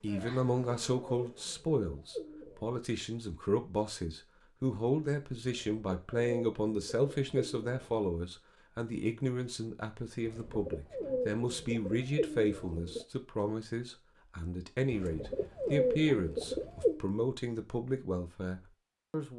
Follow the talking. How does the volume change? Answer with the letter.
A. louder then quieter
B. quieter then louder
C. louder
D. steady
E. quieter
D.